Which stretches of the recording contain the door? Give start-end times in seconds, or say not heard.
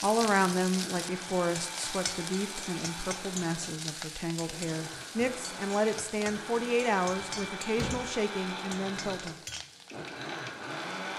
7.2-8.1.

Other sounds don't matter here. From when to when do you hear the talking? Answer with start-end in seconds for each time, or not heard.
0.0-9.3.